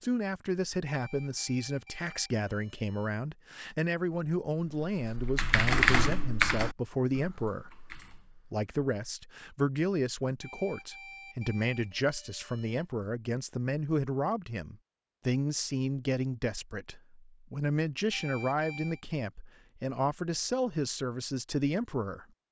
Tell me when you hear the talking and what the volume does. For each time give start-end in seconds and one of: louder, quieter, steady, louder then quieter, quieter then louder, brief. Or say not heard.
0.0-22.2 steady.